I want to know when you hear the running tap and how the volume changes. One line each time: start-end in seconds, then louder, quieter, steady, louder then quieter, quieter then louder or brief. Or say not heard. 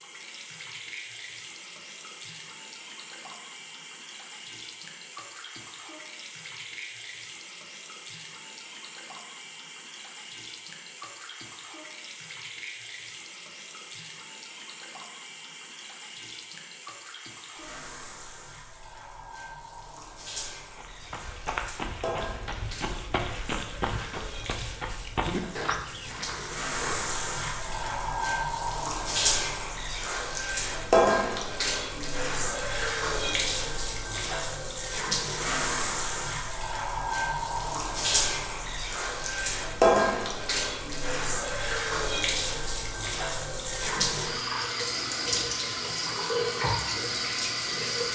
0.0-48.1 louder.